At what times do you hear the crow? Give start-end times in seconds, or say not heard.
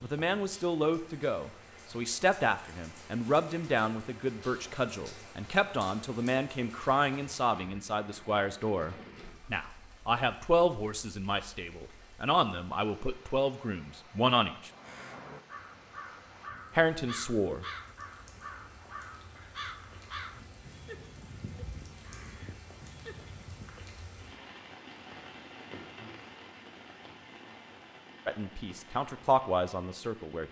14.7-23.9.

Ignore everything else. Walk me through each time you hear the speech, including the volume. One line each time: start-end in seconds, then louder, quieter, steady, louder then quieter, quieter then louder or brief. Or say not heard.
0.0-14.7 steady
16.8-17.6 brief
28.2-30.4 brief.